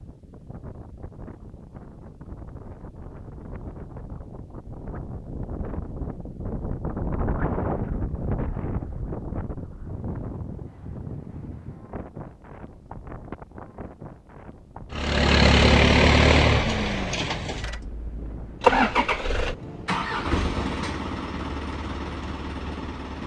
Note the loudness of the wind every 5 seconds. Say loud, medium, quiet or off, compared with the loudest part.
medium, loud, medium, medium, medium.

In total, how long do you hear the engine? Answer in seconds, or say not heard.
8 s.